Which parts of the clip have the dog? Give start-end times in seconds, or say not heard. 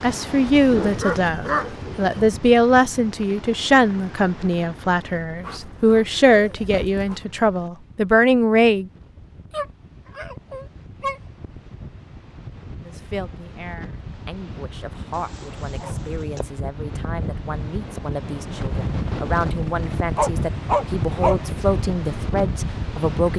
0.7-2.0, 5.4-7.2, 9.5-11.2, 15.2-16.4, 20.1-21.4.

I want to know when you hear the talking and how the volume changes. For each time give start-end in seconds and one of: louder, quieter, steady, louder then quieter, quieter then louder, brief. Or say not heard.
0.0-8.9 steady
12.8-23.3 louder.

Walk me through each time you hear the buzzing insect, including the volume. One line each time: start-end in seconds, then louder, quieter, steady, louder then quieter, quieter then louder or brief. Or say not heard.
not heard.